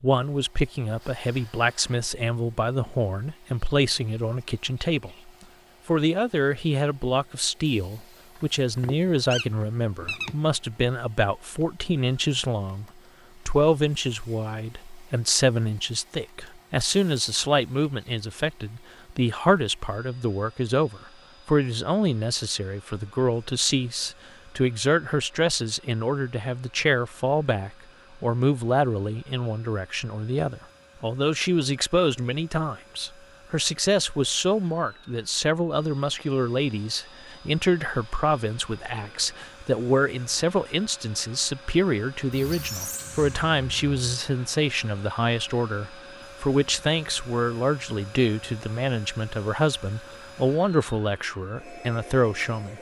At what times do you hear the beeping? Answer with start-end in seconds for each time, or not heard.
not heard.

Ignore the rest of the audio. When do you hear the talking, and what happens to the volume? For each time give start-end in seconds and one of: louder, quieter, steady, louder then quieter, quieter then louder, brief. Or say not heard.
0.0-12.8 steady
13.4-52.7 steady.